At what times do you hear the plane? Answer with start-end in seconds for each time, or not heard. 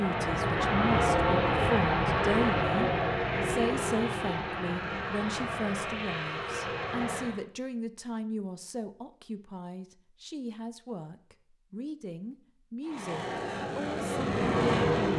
0.0-7.4, 12.8-15.1.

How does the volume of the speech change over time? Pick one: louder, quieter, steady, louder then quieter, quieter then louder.
quieter.